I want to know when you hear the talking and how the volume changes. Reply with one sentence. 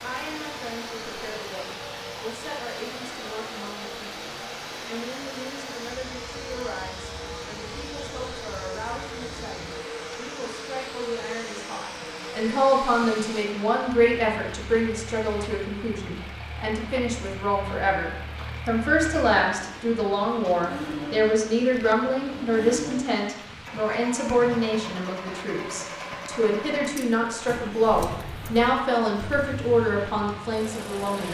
The talking can be heard from 0.0 to 31.2 s, getting louder.